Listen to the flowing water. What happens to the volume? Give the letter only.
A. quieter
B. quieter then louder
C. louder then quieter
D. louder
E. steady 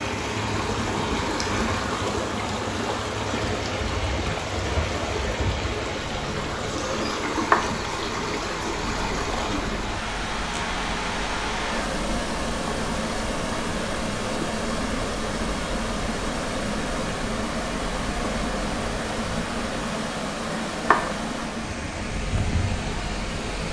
E.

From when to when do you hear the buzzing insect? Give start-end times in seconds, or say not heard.
0.0-23.6.